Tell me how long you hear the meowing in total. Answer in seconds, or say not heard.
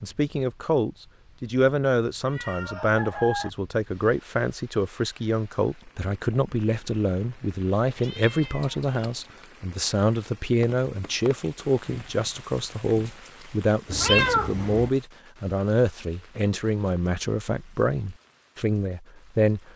3 s.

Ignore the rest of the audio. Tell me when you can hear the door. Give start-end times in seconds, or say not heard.
not heard.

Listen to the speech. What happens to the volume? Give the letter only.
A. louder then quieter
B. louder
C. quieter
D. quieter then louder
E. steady
E.